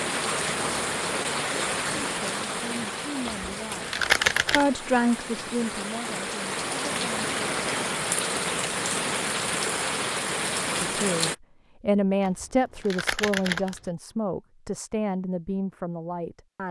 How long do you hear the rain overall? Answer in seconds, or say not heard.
11 s.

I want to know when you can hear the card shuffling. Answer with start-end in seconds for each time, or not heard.
3.2-4.7, 12.2-13.8.